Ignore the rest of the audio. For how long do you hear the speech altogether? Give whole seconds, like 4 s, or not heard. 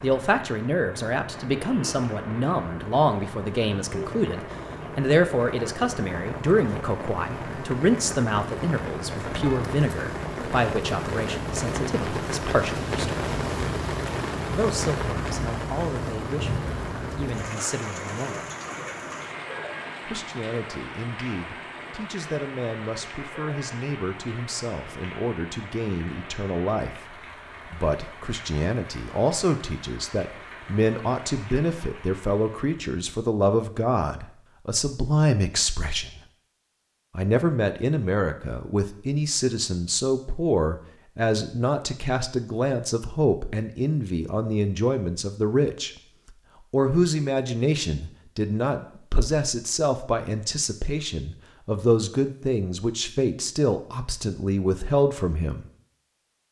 51 s.